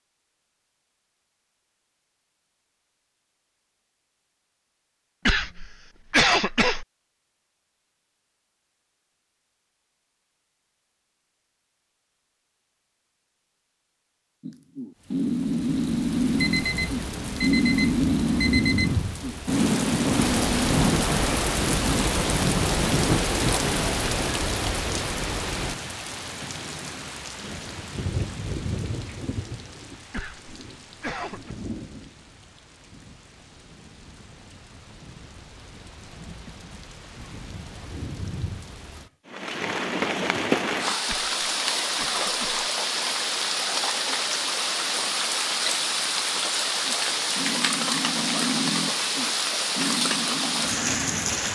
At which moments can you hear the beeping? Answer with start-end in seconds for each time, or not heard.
16.4-19.1.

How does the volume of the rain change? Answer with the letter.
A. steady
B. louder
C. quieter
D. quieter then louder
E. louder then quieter
D.